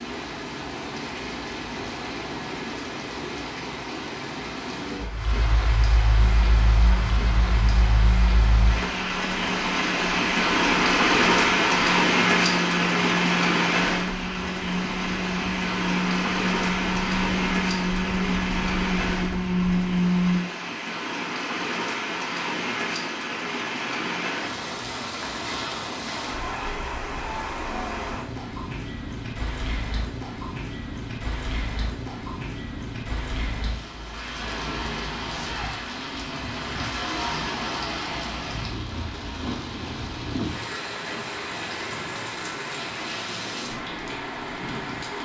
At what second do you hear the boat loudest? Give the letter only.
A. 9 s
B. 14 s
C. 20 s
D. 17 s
C.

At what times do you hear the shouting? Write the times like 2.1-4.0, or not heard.
35.3-35.7.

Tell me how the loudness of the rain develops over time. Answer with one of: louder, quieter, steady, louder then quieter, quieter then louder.
louder then quieter.